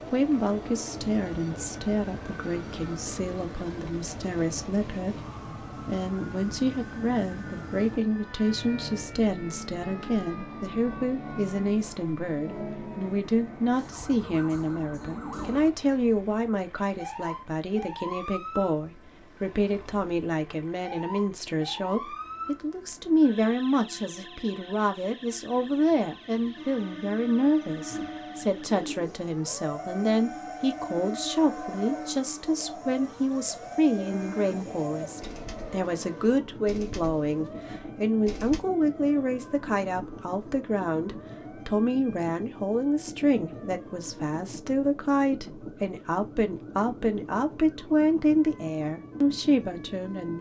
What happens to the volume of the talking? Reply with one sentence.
The volume of the talking stays about the same.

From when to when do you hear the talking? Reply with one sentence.
The talking can be heard from 0.1 to 5.2 s and from 5.8 to 50.3 s.